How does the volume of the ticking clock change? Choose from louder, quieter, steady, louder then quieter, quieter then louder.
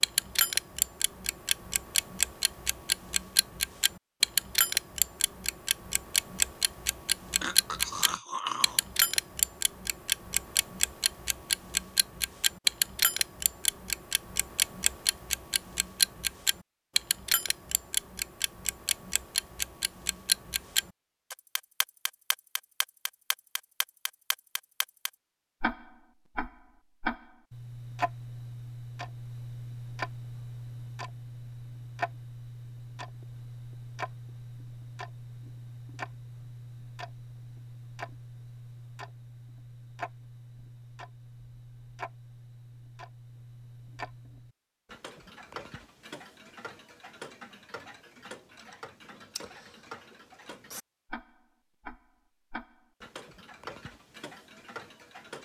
quieter.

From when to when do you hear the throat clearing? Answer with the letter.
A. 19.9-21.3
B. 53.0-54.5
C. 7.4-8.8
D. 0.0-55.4
C.